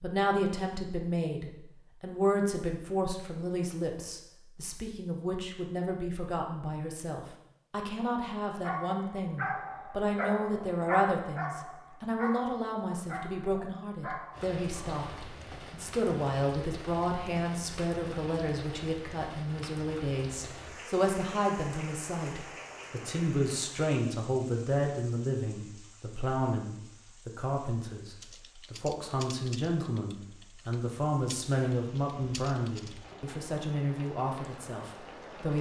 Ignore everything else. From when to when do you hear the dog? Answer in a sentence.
You can hear the dog from 8.5 to 15.0 s.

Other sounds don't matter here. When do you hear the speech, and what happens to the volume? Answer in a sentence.
You can hear the speech from 0.0 to 35.5 s, at a steady volume.